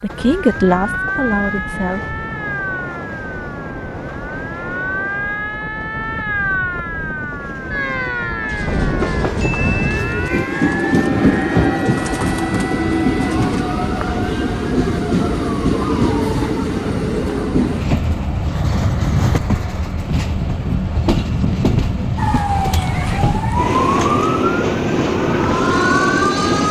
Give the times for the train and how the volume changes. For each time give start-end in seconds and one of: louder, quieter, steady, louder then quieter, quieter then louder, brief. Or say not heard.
0.0-26.6 louder.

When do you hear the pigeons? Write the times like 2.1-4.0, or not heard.
8.3-13.7.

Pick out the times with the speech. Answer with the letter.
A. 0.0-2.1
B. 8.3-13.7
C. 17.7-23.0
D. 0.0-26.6
A.